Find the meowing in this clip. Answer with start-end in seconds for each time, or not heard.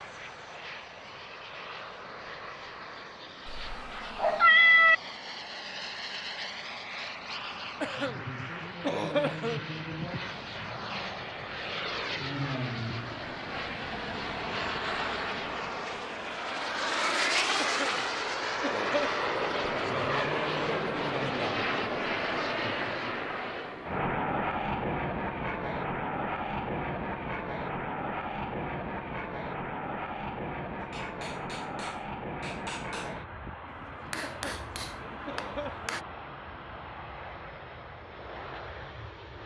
3.5-5.0.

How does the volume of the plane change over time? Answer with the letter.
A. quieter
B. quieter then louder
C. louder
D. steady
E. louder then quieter
E.